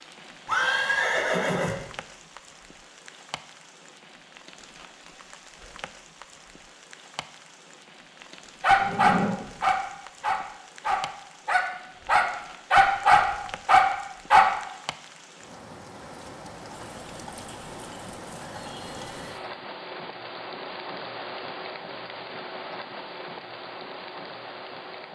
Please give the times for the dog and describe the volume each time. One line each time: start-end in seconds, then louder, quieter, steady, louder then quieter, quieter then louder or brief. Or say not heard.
8.6-14.5 quieter then louder.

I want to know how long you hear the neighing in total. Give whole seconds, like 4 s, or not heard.
5 s.